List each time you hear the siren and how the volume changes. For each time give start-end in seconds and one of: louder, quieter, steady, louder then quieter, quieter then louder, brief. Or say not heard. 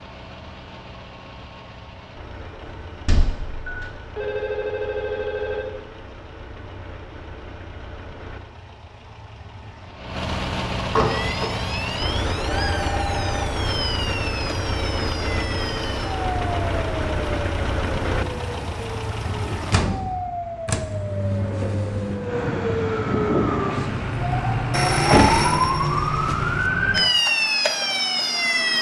11.0-28.7 louder.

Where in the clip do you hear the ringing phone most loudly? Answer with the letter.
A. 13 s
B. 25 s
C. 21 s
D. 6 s
B.